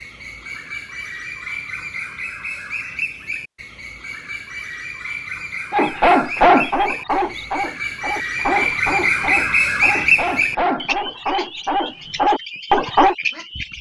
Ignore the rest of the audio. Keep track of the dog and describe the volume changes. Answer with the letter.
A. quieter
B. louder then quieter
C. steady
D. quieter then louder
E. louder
D.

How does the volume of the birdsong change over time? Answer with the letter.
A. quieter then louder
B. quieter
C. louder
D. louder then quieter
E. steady
D.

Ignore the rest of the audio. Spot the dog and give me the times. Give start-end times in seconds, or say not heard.
5.7-13.2.